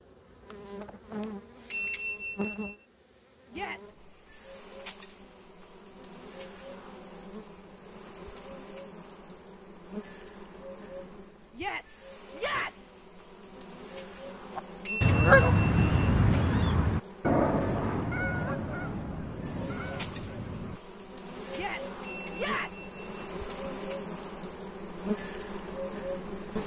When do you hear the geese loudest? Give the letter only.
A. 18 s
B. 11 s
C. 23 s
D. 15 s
D.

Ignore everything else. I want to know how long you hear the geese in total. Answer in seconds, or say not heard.
6 s.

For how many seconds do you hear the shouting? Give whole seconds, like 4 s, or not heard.
3 s.